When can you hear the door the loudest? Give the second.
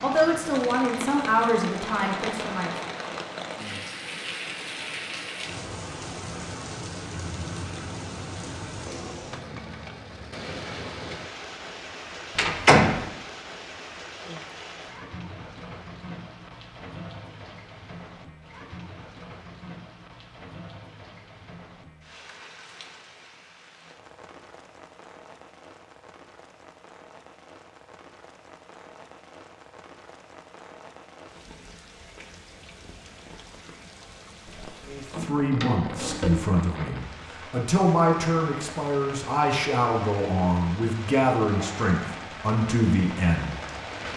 13 s.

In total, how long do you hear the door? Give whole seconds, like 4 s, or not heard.
3 s.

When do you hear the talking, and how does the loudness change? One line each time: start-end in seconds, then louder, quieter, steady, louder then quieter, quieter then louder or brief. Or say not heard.
0.0-2.7 brief
34.9-43.5 steady.